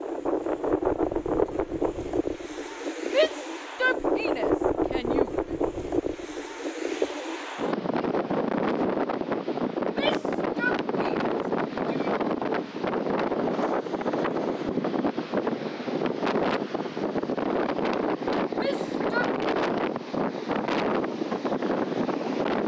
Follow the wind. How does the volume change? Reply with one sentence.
The volume of the wind stays about the same.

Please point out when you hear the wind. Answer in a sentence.
The wind can be heard from 0.0 to 22.6 s.